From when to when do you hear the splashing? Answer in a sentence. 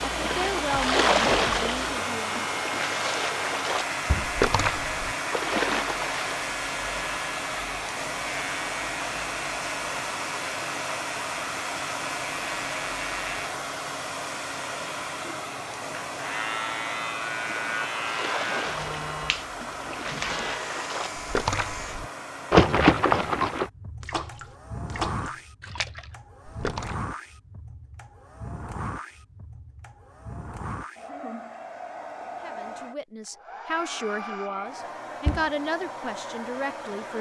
The splashing can be heard from 0.0 to 6.3 s and from 17.4 to 27.1 s.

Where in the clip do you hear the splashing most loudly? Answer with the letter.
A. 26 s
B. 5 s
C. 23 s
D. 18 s
C.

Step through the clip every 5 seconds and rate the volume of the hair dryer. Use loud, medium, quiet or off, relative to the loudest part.
loud, loud, loud, loud, medium, medium, medium, medium.